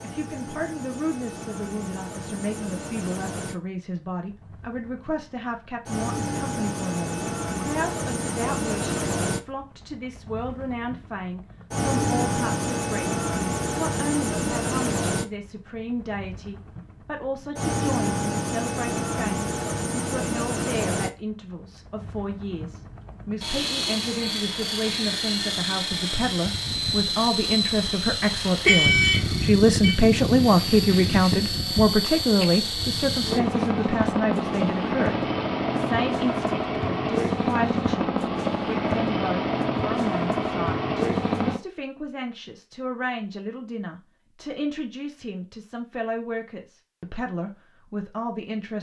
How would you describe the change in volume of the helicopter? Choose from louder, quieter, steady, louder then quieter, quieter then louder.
louder.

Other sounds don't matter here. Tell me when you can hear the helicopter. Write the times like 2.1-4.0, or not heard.
0.0-41.6.